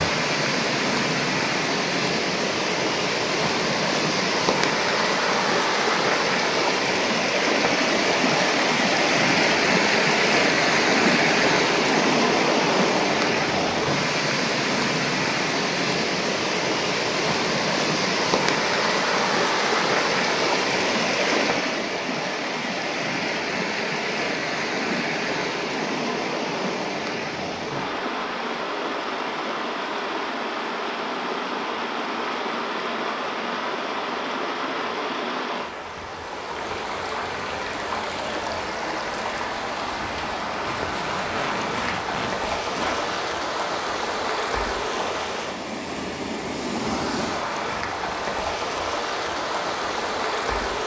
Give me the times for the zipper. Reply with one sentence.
You can hear the zipper from 40.6 to 43.3 s.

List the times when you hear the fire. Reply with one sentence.
You can't hear the fire here.